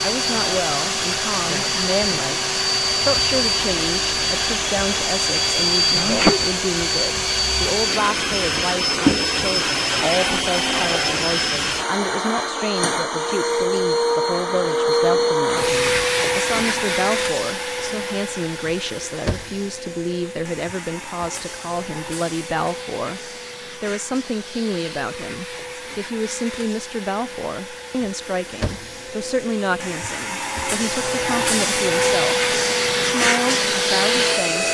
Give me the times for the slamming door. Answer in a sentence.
The slamming door can't be heard in this clip.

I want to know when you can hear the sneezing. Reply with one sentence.
The sneezing can be heard from 5.9 to 6.4 s.